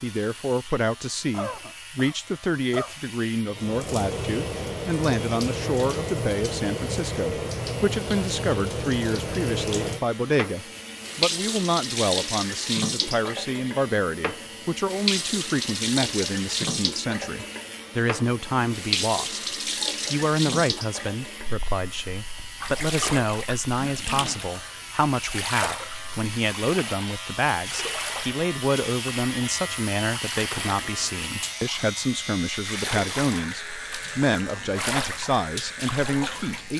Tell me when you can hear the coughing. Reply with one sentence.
You can hear the coughing from 1.3 to 3.0 s and from 23.8 to 24.5 s.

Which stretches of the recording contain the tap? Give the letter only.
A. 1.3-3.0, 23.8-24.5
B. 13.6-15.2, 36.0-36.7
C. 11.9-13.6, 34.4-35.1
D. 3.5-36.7
D.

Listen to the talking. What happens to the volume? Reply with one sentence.
The volume of the talking stays about the same.